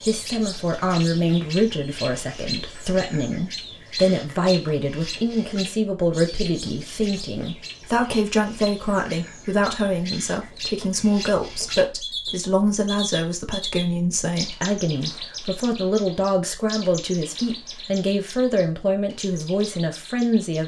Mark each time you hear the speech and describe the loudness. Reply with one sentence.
The speech can be heard from 0.0 to 20.6 s, at a steady volume.